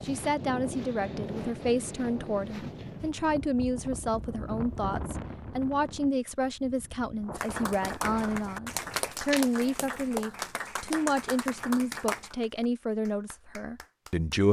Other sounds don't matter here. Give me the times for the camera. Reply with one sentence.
The camera can be heard from 8.9 to 9.4 s.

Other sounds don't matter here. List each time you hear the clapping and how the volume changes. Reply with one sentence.
The clapping can be heard from 7.3 to 14.4 s, getting quieter.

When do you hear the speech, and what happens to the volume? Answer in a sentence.
You can hear the speech from 0.0 to 14.4 s, at a steady volume.